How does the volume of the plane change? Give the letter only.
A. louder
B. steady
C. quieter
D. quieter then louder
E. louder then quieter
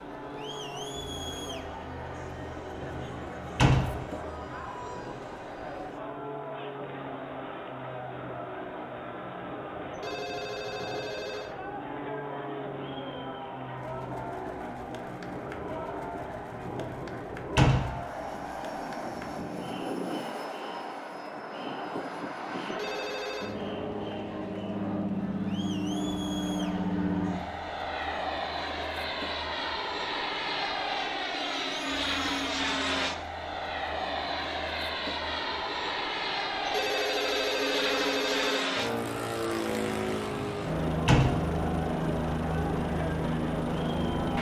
A.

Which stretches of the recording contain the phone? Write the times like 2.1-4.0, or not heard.
9.9-11.6, 22.7-23.6, 36.6-38.6.